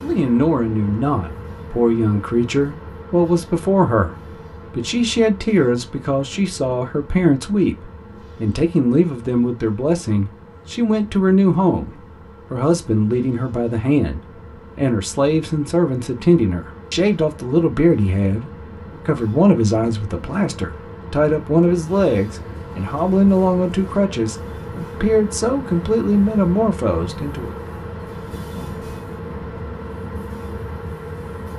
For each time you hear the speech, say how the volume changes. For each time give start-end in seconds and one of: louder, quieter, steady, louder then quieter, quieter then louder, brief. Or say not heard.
0.0-27.6 steady.